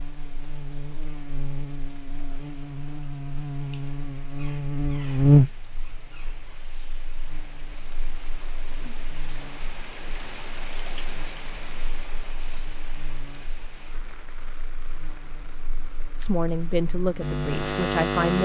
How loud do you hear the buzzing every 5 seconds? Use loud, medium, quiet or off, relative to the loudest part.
medium, loud, quiet, medium.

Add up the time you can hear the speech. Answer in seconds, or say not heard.
2 s.